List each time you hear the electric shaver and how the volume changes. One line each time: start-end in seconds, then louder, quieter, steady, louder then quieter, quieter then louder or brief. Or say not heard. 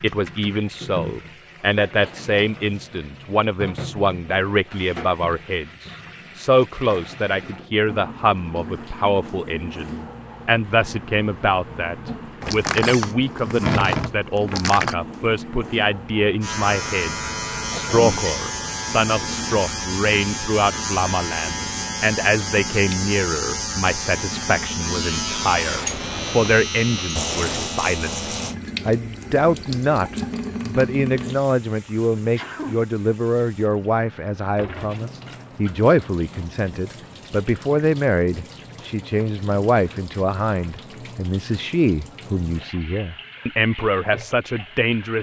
16.4-28.6 steady.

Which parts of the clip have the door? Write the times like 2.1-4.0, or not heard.
12.4-14.9, 25.6-27.7.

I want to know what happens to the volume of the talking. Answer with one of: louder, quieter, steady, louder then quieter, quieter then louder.
steady.